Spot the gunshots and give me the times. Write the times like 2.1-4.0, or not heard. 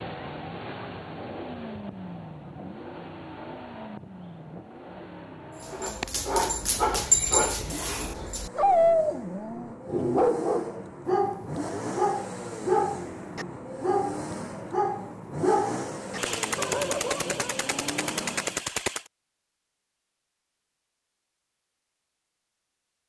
16.1-19.1.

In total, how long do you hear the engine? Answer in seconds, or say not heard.
19 s.